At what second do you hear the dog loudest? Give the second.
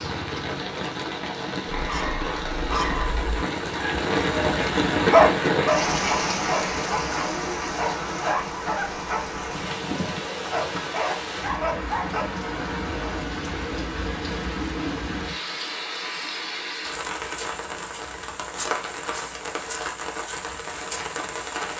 5 s.